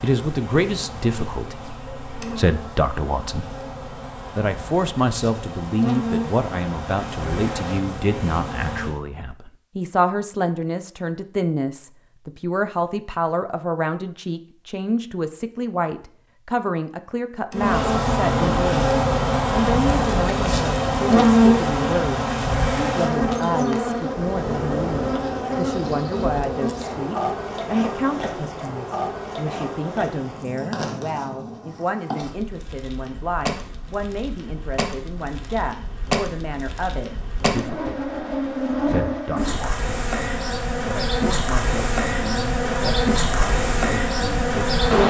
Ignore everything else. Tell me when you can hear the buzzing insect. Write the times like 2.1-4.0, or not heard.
0.0-9.0, 17.5-45.0.